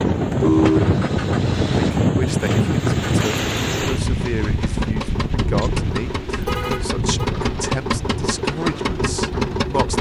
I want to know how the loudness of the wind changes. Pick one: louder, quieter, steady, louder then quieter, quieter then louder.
quieter.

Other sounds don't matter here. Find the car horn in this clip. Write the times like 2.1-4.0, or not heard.
0.1-1.0, 6.4-7.3.